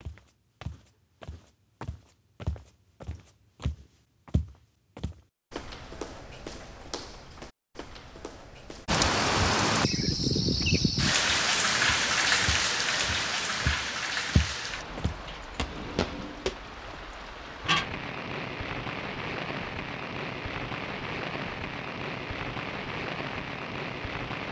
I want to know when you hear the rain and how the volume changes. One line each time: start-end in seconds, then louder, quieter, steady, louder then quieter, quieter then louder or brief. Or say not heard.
8.8-24.4 quieter.